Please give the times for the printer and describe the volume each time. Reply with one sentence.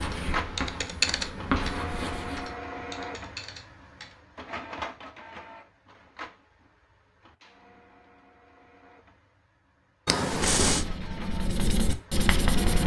The printer can be heard from 0.1 to 12.8 s, getting quieter then louder.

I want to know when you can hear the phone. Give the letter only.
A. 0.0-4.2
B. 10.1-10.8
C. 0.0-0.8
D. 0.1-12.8
B.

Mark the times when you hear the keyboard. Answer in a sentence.
You can hear the keyboard from 0.0 to 4.2 s.